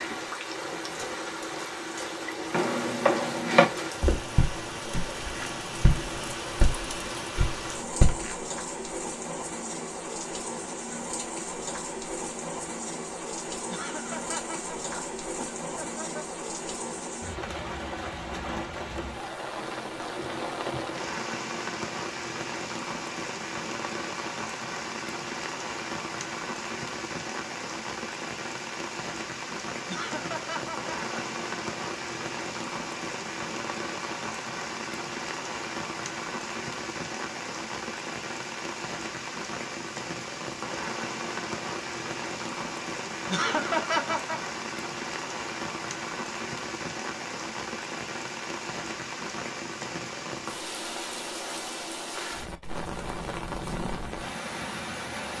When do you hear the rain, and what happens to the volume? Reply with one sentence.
You can hear the rain from 0.0 to 55.3 s, at a steady volume.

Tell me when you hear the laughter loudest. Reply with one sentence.
The volume of the laughter peaks at 44 seconds.